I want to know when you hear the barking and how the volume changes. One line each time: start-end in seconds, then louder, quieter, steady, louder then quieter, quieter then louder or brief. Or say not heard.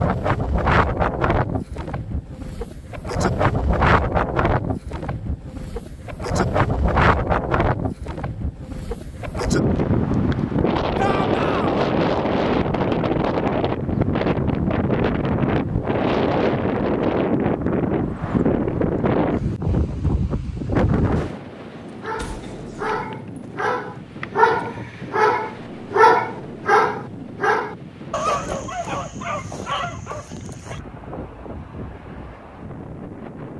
21.8-30.8 louder then quieter.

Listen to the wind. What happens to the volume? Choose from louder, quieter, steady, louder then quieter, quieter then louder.
quieter.